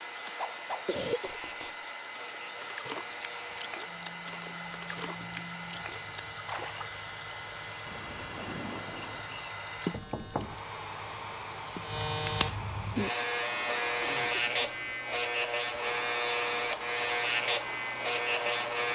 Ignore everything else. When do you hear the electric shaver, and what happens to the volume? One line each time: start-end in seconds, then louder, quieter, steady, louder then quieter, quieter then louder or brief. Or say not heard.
0.0-18.8 louder.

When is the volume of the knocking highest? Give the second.
10 s.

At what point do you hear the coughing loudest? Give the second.
1 s.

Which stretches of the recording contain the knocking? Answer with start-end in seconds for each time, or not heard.
1.2-1.9, 9.9-10.7.